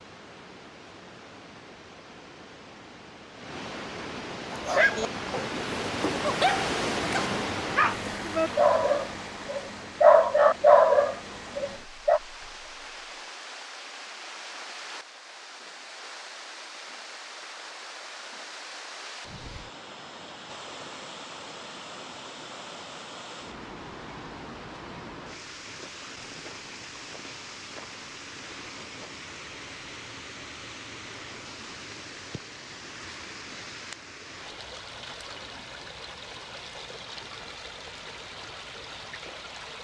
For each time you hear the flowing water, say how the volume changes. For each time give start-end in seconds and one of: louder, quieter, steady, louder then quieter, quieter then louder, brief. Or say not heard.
0.0-39.8 quieter.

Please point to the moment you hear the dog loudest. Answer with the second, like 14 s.
11 s.